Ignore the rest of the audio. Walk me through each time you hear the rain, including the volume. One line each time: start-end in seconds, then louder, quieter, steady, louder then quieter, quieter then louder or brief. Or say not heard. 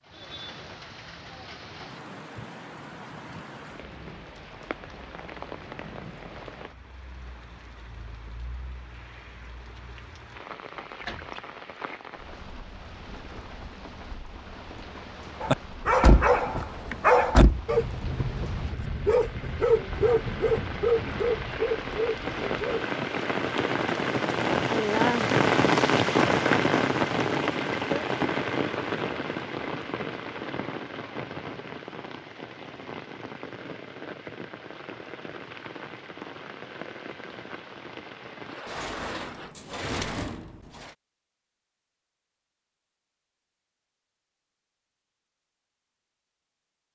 0.0-39.5 louder then quieter.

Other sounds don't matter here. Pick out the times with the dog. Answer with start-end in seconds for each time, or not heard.
15.4-22.9.